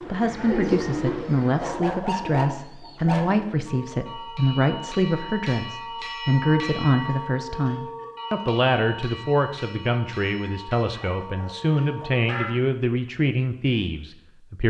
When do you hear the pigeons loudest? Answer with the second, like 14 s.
1 s.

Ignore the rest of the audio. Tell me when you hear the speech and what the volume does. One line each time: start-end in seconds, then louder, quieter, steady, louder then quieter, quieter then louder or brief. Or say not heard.
0.1-14.6 steady.